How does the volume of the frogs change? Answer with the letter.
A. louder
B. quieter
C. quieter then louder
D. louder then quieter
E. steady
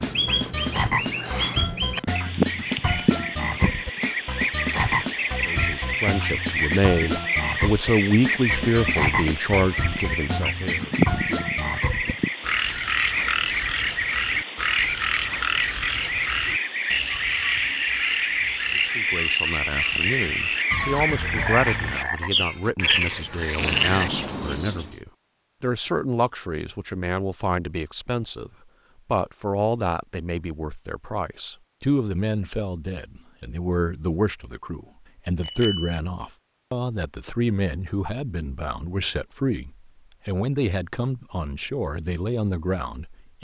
E.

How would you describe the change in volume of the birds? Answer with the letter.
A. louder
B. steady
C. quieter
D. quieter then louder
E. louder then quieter
B.